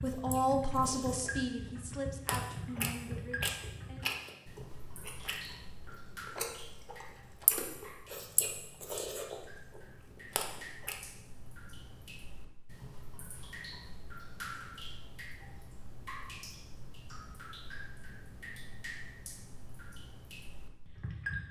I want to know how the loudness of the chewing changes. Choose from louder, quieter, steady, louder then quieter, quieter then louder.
louder.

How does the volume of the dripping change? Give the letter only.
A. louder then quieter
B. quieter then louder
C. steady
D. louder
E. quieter
B.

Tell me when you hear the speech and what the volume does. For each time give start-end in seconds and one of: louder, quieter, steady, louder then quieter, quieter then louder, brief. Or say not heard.
0.0-4.0 quieter.